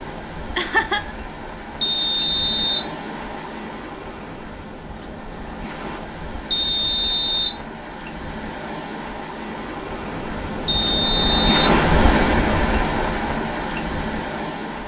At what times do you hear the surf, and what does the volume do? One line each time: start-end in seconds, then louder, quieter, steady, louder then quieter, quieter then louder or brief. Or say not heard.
0.0-14.8 louder.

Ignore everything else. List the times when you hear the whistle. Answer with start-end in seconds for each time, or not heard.
1.8-2.9, 6.5-7.6, 10.7-11.7.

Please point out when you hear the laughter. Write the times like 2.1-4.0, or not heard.
0.6-1.1.